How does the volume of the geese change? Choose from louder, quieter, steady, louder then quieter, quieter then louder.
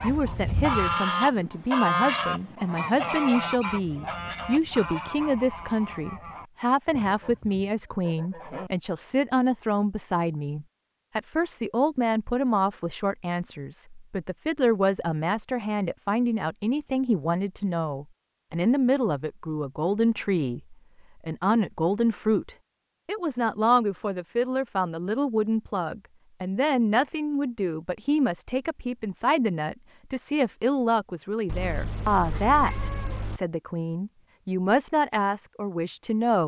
quieter.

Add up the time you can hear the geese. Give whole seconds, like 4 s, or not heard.
9 s.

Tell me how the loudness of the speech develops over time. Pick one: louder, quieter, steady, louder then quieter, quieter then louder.
steady.